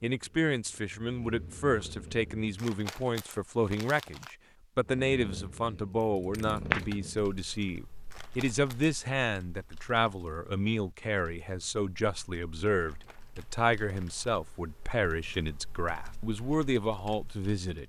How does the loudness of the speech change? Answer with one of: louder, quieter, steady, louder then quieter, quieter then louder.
steady.